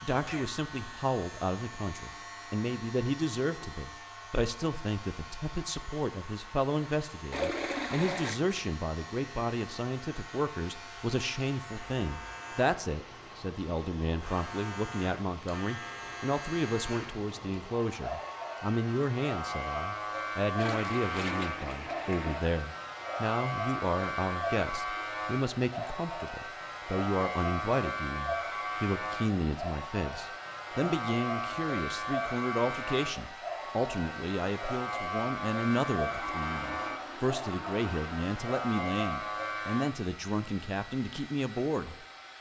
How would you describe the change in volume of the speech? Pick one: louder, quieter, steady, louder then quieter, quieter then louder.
steady.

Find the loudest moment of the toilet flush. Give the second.
8 s.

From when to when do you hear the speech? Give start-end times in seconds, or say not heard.
0.0-42.0.